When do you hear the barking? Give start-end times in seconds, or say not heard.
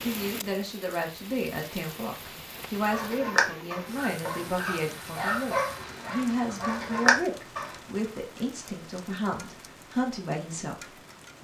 2.8-7.8.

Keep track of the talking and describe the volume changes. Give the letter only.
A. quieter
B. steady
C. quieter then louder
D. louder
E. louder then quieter
B.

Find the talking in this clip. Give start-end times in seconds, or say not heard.
0.0-11.3.